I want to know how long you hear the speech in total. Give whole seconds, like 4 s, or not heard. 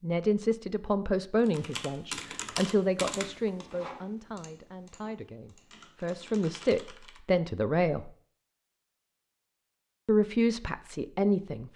10 s.